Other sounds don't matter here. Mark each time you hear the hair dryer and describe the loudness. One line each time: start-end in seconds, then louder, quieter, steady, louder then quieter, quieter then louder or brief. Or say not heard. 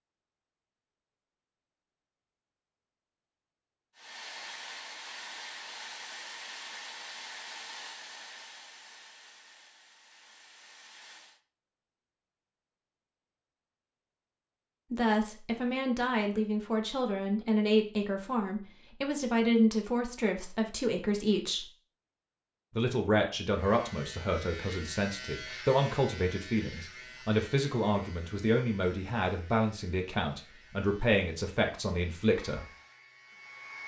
4.0-11.4 quieter
32.4-33.8 brief.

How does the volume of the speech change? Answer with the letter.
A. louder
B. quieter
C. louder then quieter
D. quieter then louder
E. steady
E.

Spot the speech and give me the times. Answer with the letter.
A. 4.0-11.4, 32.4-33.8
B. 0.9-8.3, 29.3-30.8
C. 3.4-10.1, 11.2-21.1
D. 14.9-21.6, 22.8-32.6
D.